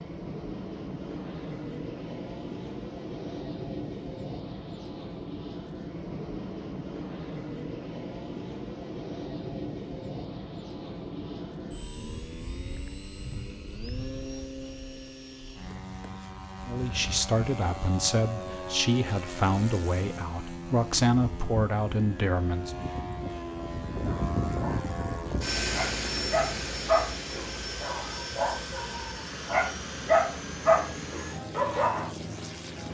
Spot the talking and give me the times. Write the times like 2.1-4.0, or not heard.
16.6-22.8.